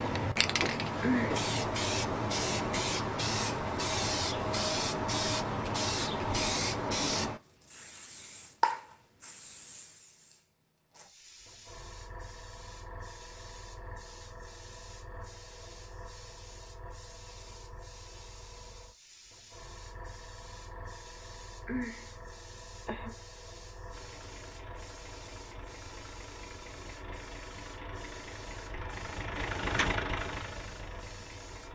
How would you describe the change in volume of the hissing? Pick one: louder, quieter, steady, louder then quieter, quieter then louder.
quieter.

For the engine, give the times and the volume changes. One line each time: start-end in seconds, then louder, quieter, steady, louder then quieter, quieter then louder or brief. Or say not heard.
23.9-31.6 louder.